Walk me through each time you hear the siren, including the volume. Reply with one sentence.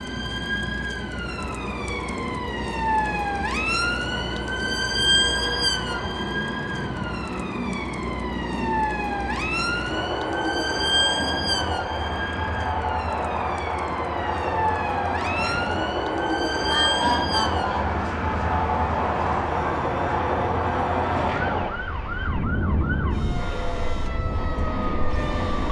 You can hear the siren from 0.0 to 25.6 s, getting quieter.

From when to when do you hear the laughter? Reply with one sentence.
You can hear the laughter from 16.6 to 18.0 s.